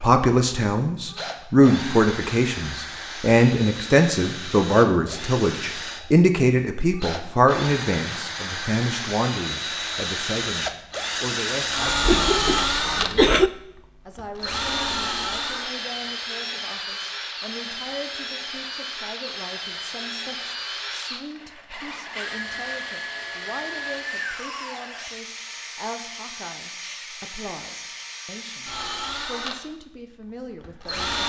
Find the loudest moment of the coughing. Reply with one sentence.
The loudest moment of the coughing is at 13 seconds.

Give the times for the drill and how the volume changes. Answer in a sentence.
You can hear the drill from 0.0 to 31.2 s, getting louder then quieter.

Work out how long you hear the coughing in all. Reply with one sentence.
You can hear the coughing for 2 seconds altogether.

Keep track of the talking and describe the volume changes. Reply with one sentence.
The volume of the talking goes down.